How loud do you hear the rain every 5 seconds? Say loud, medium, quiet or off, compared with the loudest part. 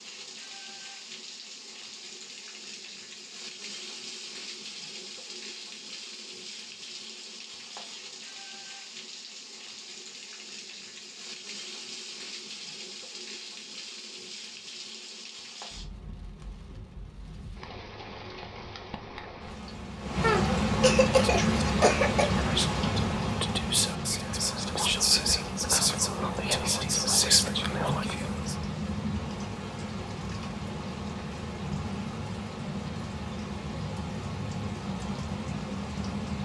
quiet, quiet, quiet, quiet, loud, medium, medium, medium.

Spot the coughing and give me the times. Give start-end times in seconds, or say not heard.
20.2-22.2.